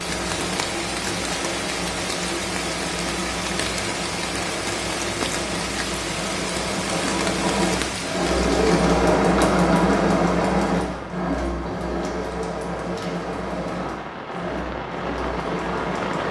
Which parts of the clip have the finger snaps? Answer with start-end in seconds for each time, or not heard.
not heard.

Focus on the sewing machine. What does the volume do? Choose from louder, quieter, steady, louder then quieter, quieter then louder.
louder then quieter.